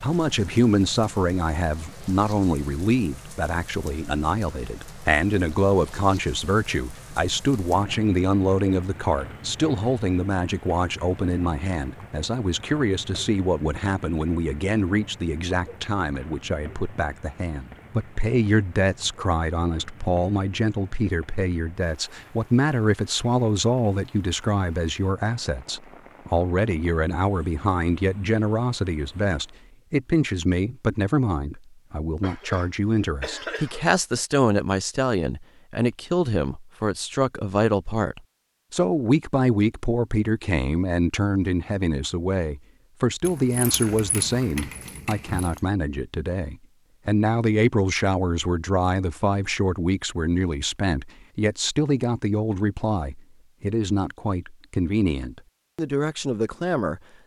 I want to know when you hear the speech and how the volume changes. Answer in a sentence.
The speech can be heard from 0.0 to 57.0 s, at a steady volume.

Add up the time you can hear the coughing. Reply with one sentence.
The coughing can be heard for 2 seconds in total.